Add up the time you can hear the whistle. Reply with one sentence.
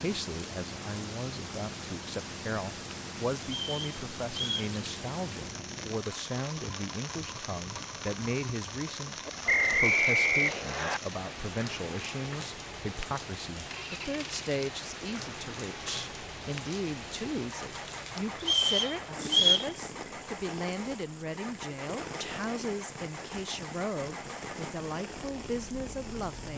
You can hear the whistle for 4 seconds altogether.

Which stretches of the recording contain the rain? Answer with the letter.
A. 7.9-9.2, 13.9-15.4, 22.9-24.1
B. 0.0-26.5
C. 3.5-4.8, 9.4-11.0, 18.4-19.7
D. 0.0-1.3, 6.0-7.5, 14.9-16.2
B.